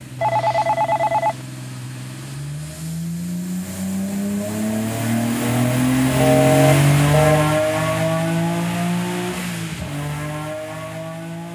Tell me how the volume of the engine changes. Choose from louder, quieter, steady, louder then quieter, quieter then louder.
louder then quieter.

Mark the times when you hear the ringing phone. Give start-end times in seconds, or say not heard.
0.2-1.4, 6.2-7.5.